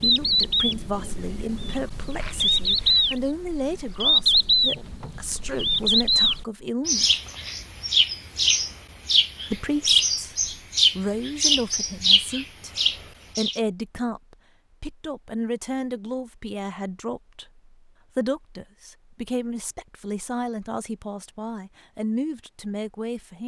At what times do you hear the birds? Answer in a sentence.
You can hear the birds from 0.0 to 13.6 s.